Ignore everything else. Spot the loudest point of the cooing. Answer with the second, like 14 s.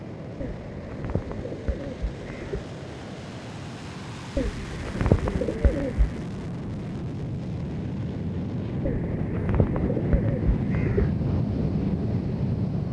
5 s.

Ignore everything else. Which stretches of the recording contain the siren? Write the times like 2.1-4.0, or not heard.
not heard.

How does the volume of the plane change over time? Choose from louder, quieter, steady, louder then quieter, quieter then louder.
louder.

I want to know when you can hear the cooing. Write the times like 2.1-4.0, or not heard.
0.4-2.6, 4.3-6.2, 8.8-11.1.